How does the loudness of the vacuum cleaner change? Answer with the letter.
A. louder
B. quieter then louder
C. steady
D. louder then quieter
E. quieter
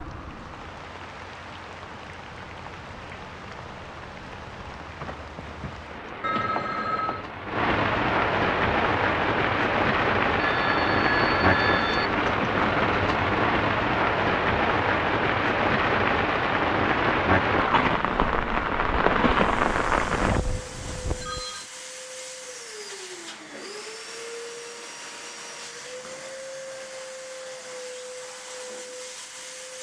C.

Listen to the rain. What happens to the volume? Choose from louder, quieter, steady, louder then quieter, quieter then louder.
louder.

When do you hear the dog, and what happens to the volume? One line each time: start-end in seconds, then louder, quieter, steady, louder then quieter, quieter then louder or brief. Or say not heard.
not heard.